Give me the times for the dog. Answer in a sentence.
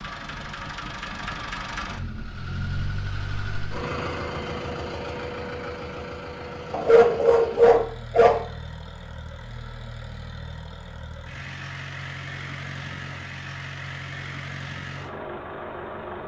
You can hear the dog from 6.7 to 8.4 s.